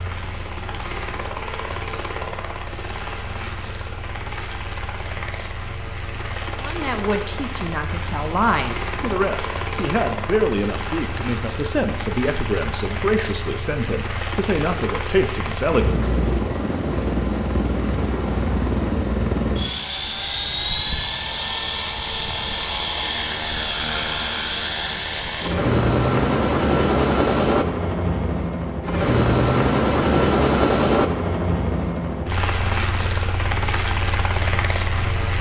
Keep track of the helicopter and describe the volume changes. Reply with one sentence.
The volume of the helicopter goes up.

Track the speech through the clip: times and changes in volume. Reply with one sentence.
You can hear the speech from 6.6 to 16.2 s, at a steady volume.